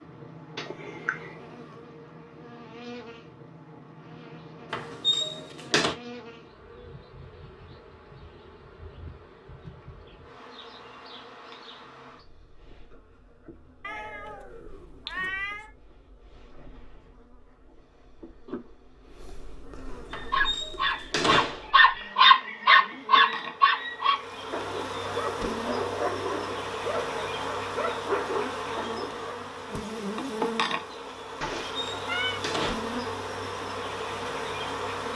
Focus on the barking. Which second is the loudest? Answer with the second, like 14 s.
22 s.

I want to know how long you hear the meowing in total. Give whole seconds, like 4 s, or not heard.
4 s.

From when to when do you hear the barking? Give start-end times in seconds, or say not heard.
20.1-29.3.